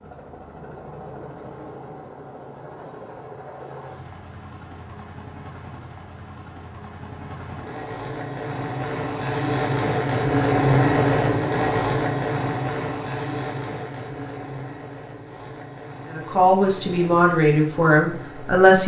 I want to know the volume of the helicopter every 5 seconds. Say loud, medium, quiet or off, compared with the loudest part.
quiet, medium, loud, quiet.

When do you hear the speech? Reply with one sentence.
You can hear the speech from 16.1 to 18.8 s.